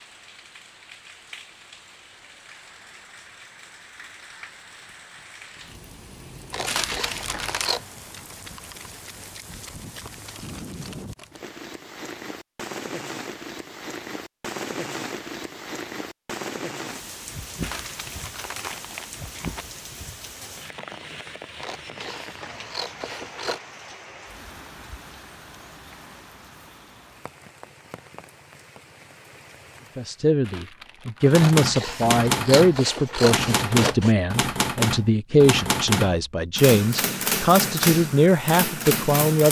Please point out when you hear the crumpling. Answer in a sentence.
You can hear the crumpling from 6.7 to 7.8 s, from 17.6 to 19.6 s and from 30.4 to 31.4 s.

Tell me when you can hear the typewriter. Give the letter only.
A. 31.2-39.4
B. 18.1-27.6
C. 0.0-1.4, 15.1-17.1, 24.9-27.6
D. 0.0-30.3
A.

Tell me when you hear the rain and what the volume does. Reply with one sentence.
The rain can be heard from 0.0 to 30.3 s, getting louder then quieter.